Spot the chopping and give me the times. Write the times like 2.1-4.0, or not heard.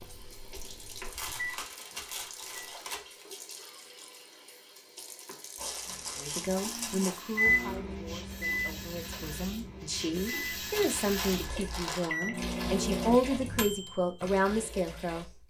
not heard.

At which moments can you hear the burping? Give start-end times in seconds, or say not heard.
not heard.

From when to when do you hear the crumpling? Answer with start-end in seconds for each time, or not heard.
1.1-3.2, 5.5-7.2, 10.7-12.1.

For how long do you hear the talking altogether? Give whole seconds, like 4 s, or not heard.
9 s.